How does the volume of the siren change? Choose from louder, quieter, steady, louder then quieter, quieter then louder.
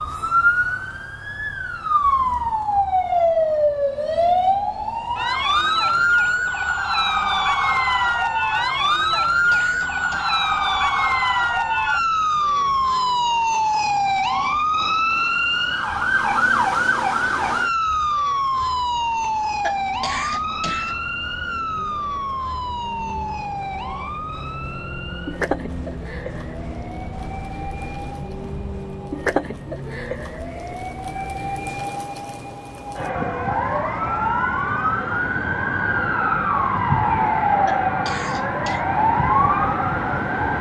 quieter then louder.